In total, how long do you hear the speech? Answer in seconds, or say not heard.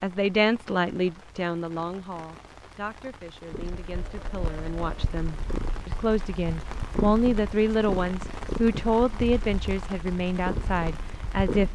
12 s.